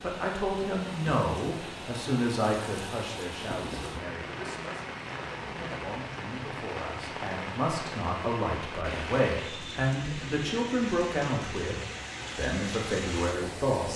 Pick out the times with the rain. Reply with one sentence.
The rain can be heard from 0.0 to 13.9 s.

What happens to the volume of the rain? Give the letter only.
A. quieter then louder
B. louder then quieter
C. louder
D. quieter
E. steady
E.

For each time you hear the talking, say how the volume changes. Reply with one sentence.
You can hear the talking from 0.0 to 11.8 s, getting quieter then louder; and briefly from 12.3 to 13.9 s.